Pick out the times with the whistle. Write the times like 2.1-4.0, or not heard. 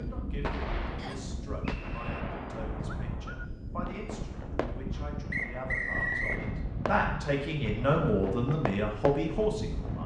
0.9-2.2, 5.3-6.5.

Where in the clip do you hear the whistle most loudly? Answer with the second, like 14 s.
6 s.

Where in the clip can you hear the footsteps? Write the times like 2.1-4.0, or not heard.
not heard.